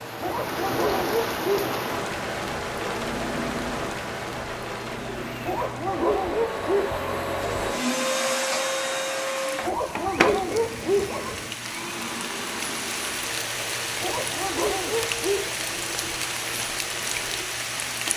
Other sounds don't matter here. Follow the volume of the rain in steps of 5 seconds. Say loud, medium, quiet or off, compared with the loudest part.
loud, medium, loud, loud.